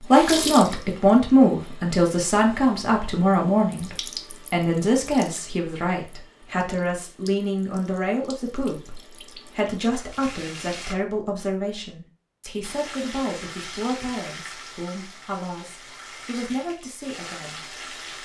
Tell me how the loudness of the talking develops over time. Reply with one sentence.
The loudness of the talking goes down.